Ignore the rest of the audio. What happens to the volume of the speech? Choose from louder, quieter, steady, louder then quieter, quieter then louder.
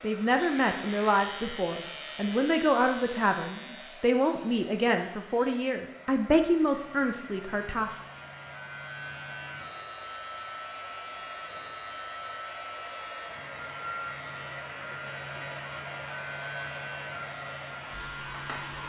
steady.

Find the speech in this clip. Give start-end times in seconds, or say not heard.
0.0-7.9.